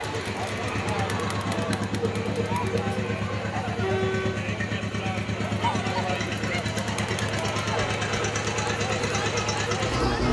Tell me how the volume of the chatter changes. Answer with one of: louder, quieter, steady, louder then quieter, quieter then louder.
steady.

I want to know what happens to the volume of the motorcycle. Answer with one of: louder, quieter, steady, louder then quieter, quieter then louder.
steady.